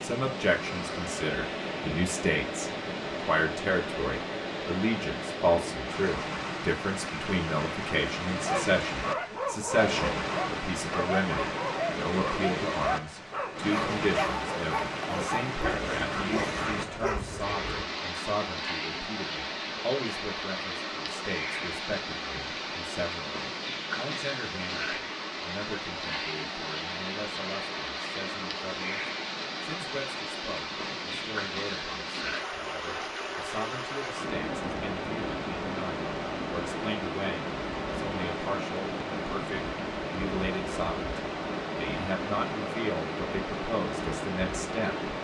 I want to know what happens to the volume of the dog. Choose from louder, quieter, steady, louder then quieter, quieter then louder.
steady.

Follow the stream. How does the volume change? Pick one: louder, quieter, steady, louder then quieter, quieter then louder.
steady.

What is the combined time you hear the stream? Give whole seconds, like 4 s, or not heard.
45 s.